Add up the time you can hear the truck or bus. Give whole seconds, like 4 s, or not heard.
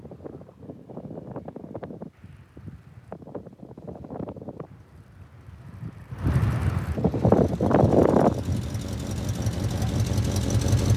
4 s.